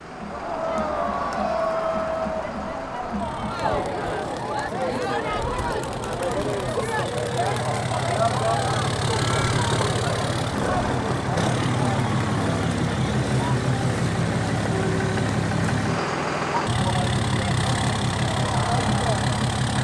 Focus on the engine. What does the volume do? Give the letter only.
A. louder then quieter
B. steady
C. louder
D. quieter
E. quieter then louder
C.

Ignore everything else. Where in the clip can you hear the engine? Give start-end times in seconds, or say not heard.
0.0-19.7.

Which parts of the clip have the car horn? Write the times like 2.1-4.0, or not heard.
not heard.